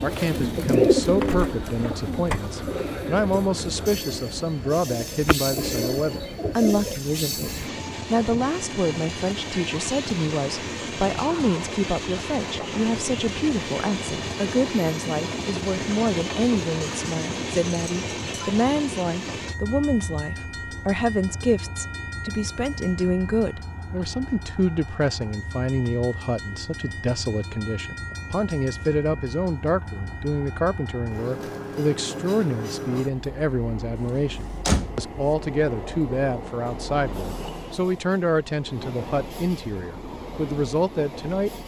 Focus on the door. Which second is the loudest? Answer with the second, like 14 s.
35 s.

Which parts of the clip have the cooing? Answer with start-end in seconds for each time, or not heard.
0.0-7.0.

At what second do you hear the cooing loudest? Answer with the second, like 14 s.
1 s.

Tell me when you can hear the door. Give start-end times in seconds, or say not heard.
1.2-2.5, 34.6-35.1.